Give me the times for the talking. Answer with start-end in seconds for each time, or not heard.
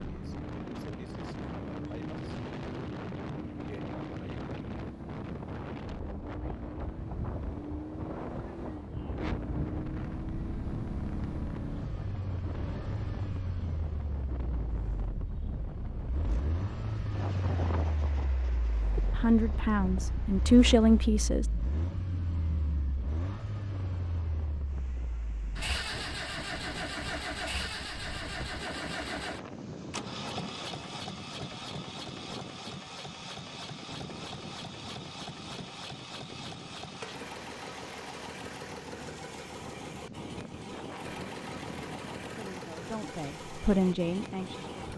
19.1-21.4, 42.4-44.9.